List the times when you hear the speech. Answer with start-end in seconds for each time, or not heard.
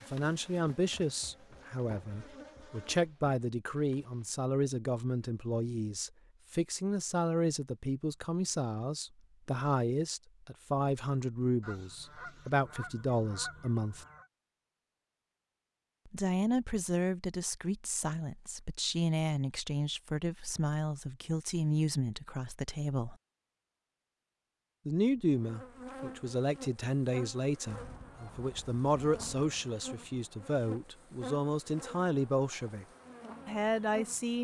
0.1-14.1, 16.1-23.1, 24.9-32.9, 33.5-34.3.